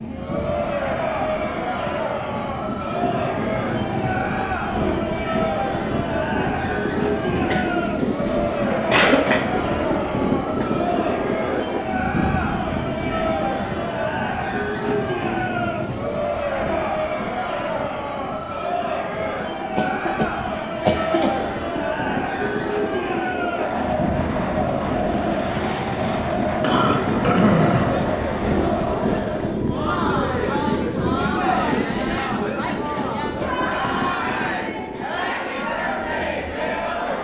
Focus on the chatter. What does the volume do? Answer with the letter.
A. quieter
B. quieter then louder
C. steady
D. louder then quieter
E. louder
C.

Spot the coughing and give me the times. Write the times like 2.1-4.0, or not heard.
7.5-9.4, 19.8-21.4, 26.6-28.1.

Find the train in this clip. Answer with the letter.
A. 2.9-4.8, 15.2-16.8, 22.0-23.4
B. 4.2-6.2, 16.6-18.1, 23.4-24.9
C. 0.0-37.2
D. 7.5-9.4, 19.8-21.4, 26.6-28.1
C.